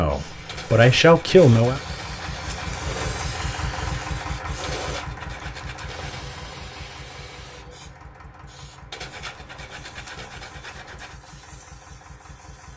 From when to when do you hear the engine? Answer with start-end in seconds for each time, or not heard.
0.1-12.7.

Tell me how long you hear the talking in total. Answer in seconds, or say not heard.
2 s.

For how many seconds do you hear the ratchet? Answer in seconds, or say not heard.
not heard.